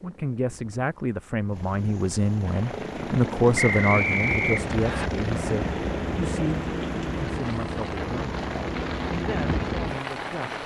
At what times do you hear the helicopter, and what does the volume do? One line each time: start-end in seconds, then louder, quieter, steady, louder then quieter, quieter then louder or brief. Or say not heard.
0.0-10.6 louder.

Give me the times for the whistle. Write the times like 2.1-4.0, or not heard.
3.5-5.1.